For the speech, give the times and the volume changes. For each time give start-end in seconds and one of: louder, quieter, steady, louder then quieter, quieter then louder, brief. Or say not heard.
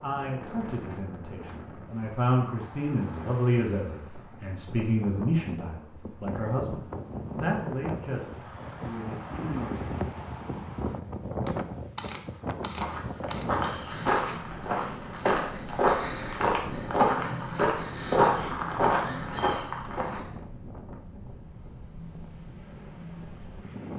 0.0-9.8 louder then quieter.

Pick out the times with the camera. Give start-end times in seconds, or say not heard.
11.4-13.4.